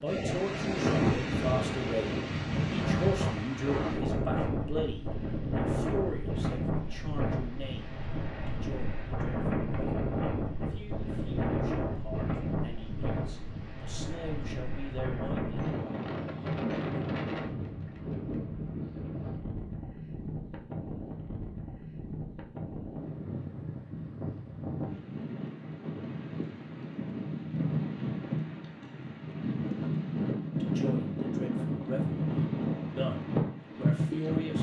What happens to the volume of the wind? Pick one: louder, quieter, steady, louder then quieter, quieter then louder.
quieter then louder.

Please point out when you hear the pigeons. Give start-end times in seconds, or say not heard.
not heard.